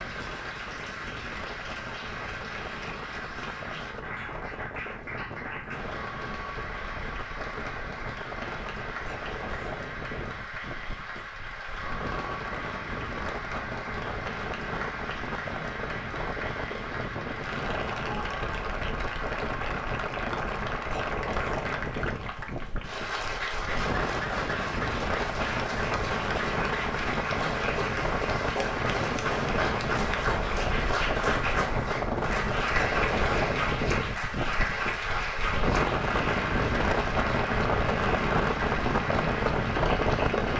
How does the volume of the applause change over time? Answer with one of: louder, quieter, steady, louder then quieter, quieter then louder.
louder.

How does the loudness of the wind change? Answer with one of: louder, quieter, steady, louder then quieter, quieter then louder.
louder.